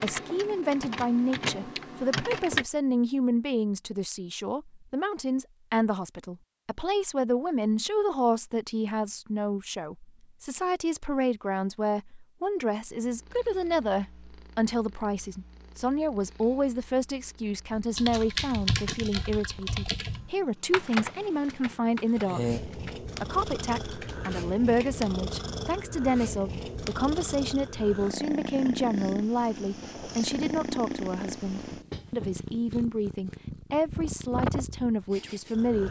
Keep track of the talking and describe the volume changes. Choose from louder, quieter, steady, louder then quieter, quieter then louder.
steady.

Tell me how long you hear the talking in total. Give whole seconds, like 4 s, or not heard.
36 s.